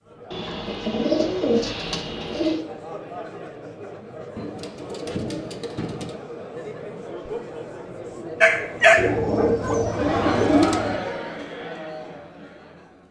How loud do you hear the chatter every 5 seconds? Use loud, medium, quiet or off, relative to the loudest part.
medium, medium, loud.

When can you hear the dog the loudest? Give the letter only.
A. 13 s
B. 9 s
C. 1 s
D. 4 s
B.